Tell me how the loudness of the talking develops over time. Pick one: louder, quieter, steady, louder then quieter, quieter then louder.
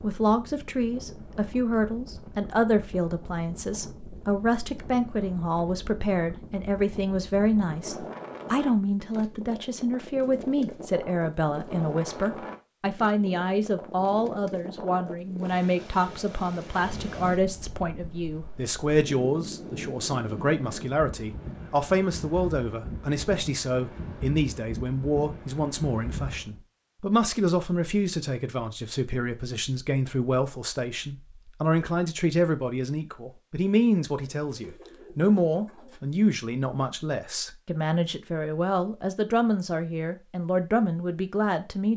steady.